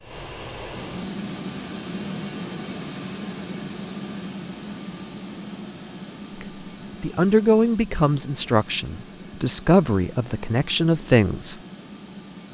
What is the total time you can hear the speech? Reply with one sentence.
The speech can be heard for 5 seconds in total.